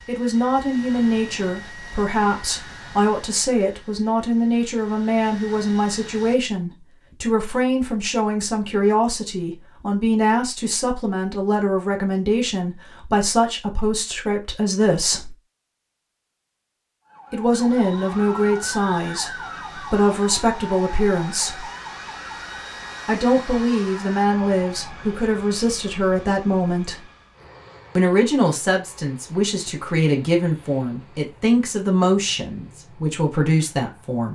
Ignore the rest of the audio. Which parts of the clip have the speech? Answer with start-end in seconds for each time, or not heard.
0.1-15.3, 17.3-21.6, 23.1-27.1, 27.9-34.2.